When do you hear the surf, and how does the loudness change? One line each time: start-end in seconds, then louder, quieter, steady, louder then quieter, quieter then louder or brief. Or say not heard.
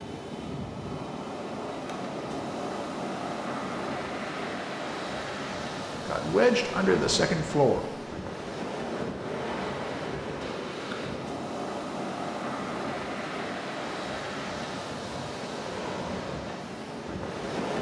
0.0-17.7 steady.